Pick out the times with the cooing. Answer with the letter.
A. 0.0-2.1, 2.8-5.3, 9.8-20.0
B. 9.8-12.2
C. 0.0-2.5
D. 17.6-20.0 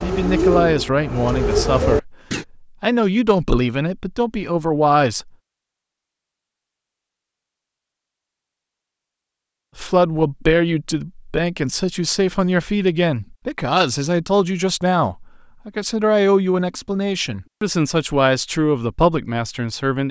C.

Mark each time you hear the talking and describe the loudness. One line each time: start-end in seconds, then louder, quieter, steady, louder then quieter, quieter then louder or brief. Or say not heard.
0.0-2.1 brief
2.8-5.3 brief
9.8-20.0 steady.